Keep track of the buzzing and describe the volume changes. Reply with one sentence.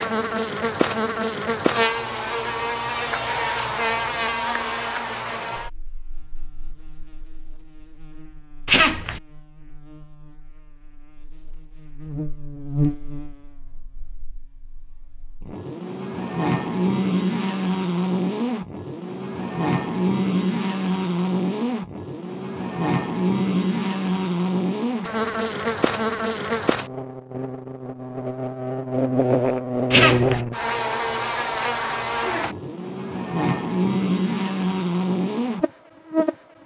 The volume of the buzzing goes down, then up.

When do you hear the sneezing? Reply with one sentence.
The sneezing can be heard from 8.7 to 9.2 s and from 29.9 to 30.4 s.